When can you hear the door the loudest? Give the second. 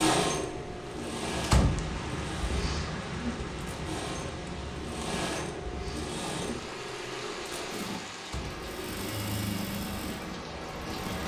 2 s.